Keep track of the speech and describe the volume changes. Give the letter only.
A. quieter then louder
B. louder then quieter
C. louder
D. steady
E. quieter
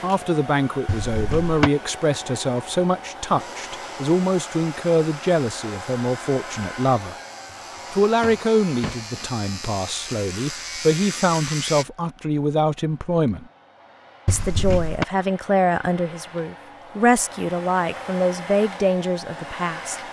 D.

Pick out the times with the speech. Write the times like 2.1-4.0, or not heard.
0.0-7.2, 7.9-13.4, 14.2-20.0.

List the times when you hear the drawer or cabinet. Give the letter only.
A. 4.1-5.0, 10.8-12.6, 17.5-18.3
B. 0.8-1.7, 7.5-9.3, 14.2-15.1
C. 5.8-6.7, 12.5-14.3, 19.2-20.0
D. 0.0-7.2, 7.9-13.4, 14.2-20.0
B.